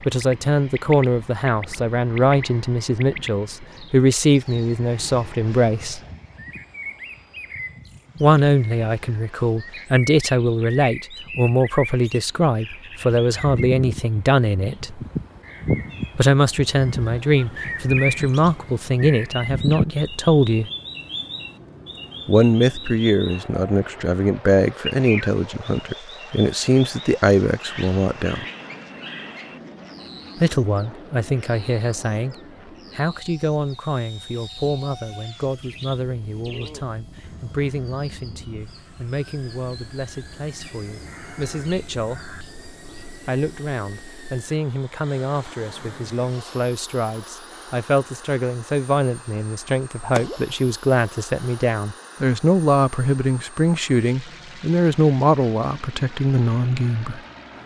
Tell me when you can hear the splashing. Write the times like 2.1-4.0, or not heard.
50.0-50.4.